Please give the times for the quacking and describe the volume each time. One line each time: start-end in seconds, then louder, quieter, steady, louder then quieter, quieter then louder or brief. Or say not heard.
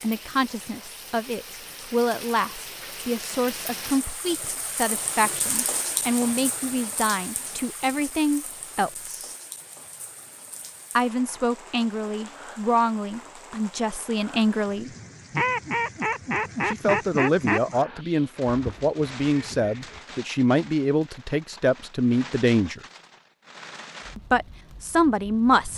15.3-20.1 quieter.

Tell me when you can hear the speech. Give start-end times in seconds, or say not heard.
0.0-9.3, 10.9-14.9, 16.6-22.8, 24.1-25.7.